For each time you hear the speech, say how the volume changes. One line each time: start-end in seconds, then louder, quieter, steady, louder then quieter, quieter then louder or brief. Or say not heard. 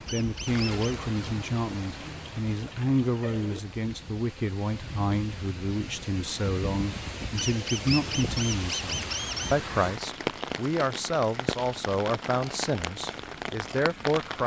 0.1-14.4 steady.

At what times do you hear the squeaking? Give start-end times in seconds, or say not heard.
0.1-0.9, 7.3-9.6.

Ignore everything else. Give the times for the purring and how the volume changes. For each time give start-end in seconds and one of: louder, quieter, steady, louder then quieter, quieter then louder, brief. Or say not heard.
not heard.